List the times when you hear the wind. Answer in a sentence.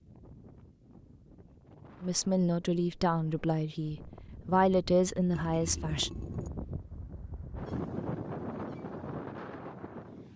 You can hear the wind from 0.0 to 10.3 s.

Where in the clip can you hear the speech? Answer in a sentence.
The speech can be heard from 2.0 to 6.1 s.